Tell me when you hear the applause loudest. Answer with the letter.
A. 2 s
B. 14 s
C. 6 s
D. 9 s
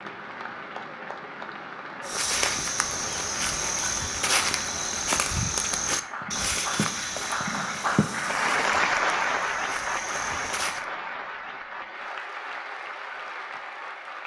D.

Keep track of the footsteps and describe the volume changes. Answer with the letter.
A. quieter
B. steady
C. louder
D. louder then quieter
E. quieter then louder
A.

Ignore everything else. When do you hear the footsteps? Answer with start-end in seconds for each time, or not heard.
2.0-10.8.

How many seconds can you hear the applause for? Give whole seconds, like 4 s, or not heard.
14 s.